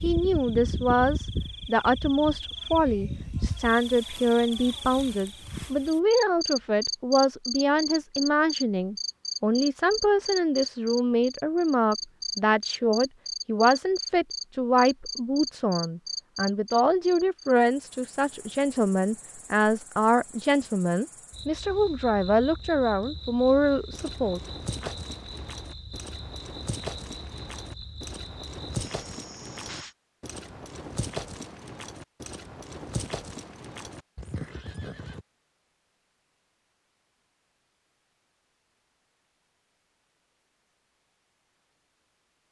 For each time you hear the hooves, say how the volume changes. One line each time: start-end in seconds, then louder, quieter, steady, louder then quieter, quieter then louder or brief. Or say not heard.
23.9-35.2 steady.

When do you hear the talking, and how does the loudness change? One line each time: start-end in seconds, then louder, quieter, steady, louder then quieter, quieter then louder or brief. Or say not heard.
0.0-24.9 steady.